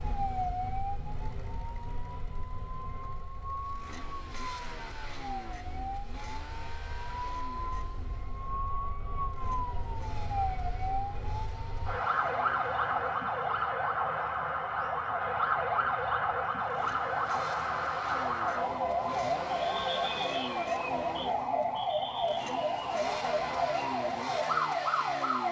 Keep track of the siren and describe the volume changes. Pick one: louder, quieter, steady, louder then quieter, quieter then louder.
louder.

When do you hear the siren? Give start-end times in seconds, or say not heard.
0.0-25.4.